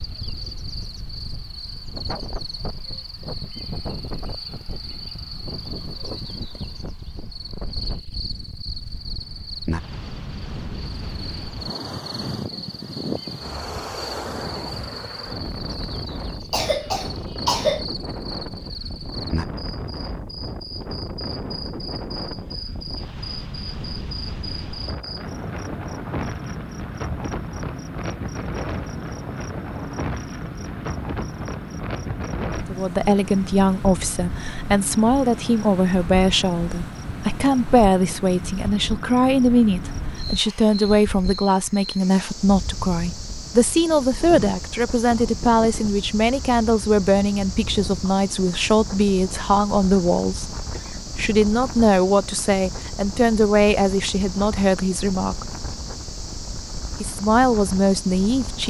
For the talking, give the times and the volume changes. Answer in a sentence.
You can hear the talking from 32.6 to 55.5 s, at a steady volume; and briefly from 57.0 to 58.6 s.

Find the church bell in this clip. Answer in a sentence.
The church bell can't be heard in this clip.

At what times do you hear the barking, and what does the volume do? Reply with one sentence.
You can't hear the barking here.